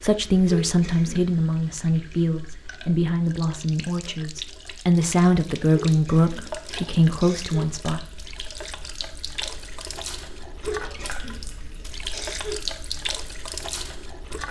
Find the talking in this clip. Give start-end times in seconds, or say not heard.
0.0-8.0.